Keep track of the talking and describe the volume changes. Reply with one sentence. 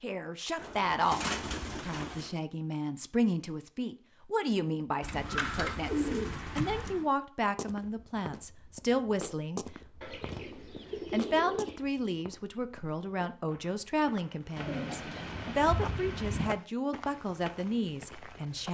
The volume of the talking stays about the same.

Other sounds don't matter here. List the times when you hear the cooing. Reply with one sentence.
The cooing can be heard from 0.6 to 2.3 s, from 5.0 to 7.0 s, from 10.0 to 11.8 s and from 14.6 to 16.5 s.